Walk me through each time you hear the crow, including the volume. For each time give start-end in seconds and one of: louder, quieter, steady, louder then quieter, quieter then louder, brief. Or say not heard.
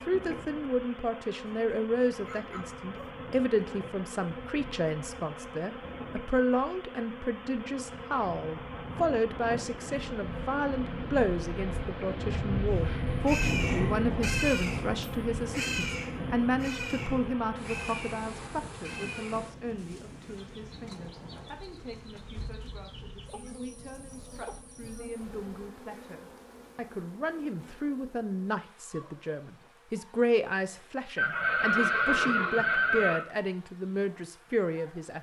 12.7-19.4 quieter.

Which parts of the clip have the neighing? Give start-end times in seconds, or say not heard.
31.1-33.2.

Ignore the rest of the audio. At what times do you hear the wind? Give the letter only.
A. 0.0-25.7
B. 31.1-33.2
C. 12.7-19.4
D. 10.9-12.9
A.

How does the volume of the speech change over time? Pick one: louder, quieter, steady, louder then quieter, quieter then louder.
quieter then louder.